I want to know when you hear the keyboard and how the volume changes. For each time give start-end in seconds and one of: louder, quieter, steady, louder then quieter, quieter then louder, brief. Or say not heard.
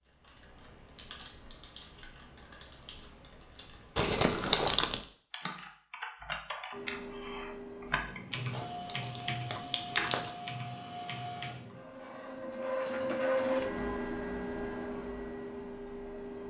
0.1-11.8 louder.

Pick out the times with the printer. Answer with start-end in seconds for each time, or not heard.
6.7-16.4.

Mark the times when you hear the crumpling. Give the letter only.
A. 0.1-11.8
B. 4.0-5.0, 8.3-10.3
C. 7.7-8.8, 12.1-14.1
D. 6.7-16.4
B.